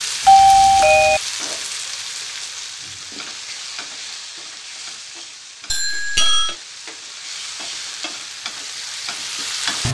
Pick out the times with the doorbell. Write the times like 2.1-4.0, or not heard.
0.2-1.2, 5.7-6.5.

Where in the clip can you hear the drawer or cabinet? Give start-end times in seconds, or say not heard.
not heard.